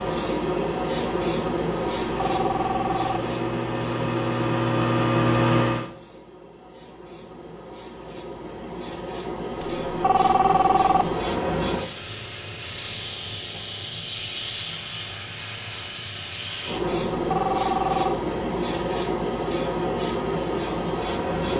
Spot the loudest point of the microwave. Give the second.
5 s.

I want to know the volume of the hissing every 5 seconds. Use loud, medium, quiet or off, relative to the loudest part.
loud, medium, loud, loud, loud.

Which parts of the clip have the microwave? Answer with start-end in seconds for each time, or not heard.
0.0-5.9.